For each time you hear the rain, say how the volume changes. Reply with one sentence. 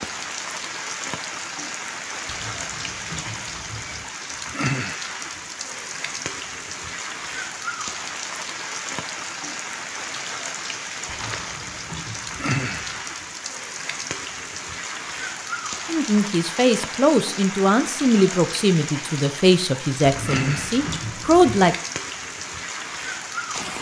The rain can be heard from 0.0 to 23.7 s, at a steady volume.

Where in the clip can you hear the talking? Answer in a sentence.
The talking can be heard from 15.8 to 21.8 s.